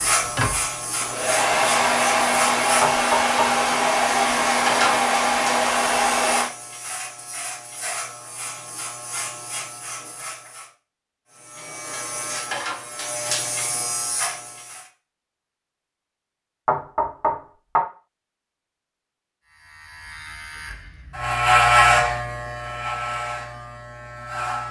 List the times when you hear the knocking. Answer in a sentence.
The knocking can be heard from 2.8 to 3.5 s and from 16.6 to 17.8 s.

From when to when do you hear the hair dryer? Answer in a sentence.
You can hear the hair dryer from 0.0 to 6.5 s.